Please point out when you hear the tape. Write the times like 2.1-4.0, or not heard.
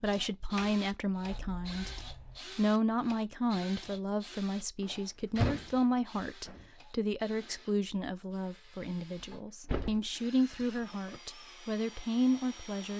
not heard.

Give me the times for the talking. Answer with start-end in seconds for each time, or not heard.
0.0-12.9.